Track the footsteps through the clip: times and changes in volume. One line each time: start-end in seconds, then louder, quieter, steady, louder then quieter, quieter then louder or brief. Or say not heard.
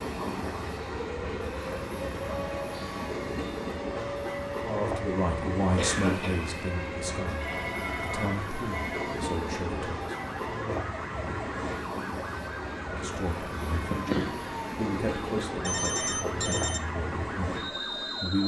not heard.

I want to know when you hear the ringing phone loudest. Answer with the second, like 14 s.
16 s.